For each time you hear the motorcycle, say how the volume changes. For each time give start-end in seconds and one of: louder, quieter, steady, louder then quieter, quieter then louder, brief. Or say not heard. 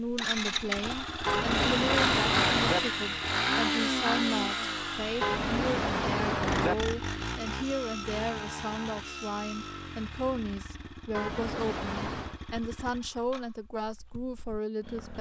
0.1-15.1 quieter.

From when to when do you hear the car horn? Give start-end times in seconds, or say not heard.
1.2-2.8, 5.2-6.8, 11.1-12.4.